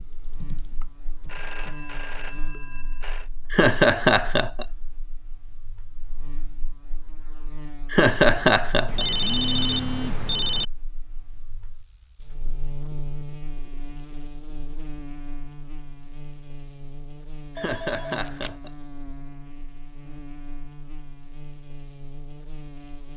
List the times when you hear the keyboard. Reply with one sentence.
You can hear the keyboard from 0.0 to 2.6 s.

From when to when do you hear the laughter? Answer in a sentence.
The laughter can be heard from 3.5 to 4.7 s, from 7.9 to 9.1 s and from 17.6 to 18.7 s.